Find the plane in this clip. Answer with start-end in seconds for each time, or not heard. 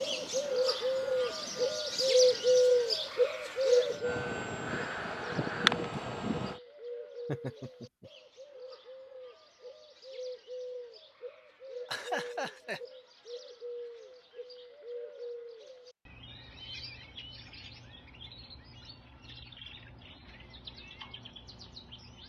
0.0-6.6.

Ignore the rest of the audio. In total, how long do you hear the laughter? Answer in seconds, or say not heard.
2 s.